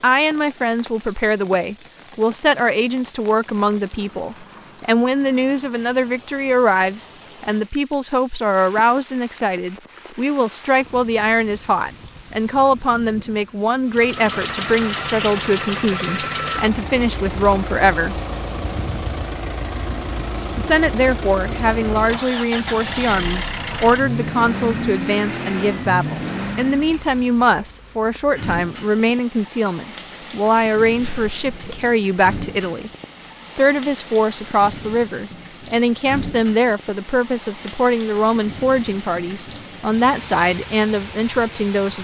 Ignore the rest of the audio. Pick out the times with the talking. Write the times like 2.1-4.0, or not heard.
0.0-18.1, 20.6-32.9, 33.5-41.9.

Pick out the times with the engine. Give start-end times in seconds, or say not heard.
13.8-27.0.